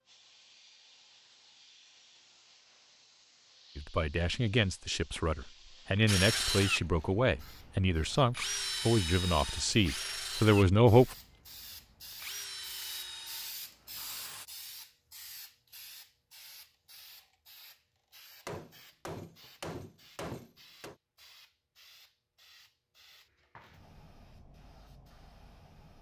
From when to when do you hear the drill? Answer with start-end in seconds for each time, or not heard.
6.0-14.4.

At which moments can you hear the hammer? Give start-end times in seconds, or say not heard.
18.4-20.9.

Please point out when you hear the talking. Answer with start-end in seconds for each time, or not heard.
3.8-11.2.